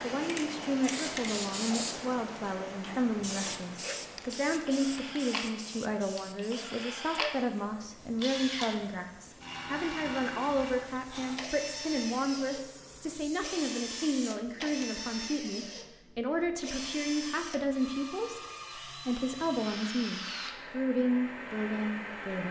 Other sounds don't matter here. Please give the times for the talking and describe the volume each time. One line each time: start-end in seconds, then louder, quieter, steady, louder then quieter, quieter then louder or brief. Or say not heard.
0.0-22.4 steady.